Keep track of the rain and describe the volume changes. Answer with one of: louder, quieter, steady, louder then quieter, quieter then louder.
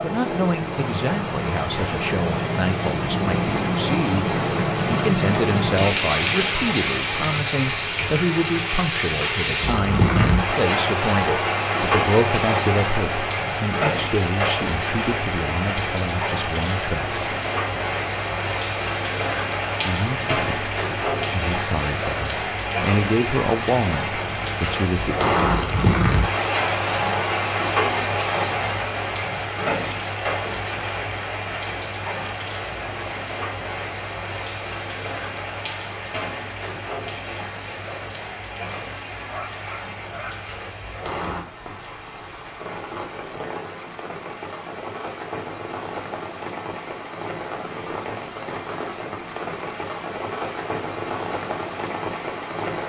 quieter.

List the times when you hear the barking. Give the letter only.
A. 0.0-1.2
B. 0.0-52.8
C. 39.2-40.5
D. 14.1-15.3
C.